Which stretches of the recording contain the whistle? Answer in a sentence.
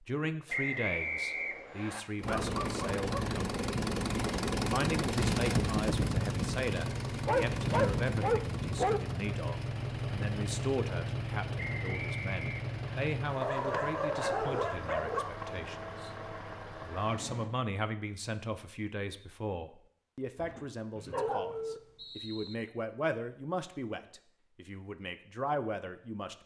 The whistle can be heard from 0.5 to 2.0 s, from 11.6 to 13.1 s and from 20.9 to 22.6 s.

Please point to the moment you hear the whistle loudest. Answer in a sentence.
The loudest moment of the whistle is at 1 second.